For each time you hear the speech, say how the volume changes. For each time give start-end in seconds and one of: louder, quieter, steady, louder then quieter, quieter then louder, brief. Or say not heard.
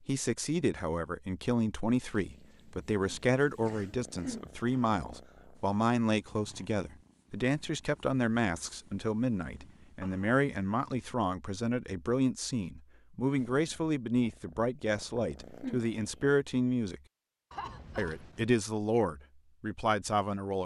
0.1-17.0 steady
17.9-20.6 brief.